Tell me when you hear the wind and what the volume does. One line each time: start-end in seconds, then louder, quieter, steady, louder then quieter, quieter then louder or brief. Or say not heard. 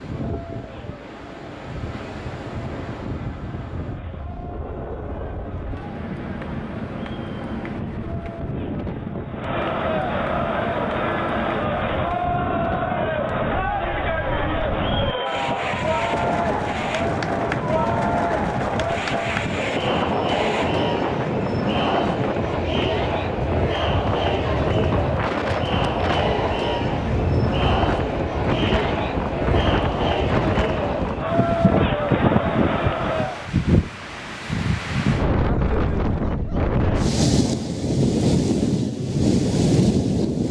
0.0-40.4 louder.